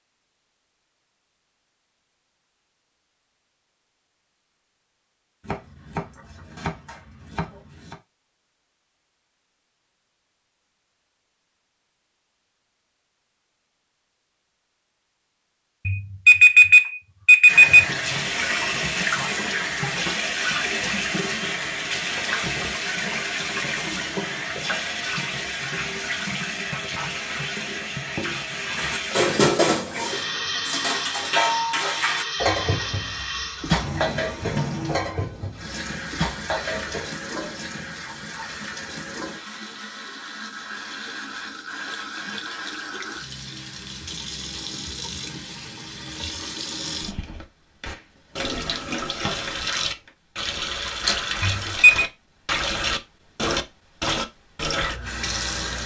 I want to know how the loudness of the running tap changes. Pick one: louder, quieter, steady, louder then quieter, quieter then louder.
quieter then louder.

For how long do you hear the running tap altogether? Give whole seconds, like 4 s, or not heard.
38 s.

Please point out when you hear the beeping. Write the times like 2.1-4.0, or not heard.
15.8-17.9, 51.4-52.0.